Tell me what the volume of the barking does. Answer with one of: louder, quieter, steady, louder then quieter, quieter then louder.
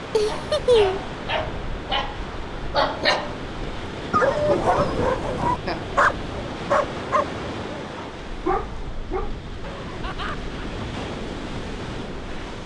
louder then quieter.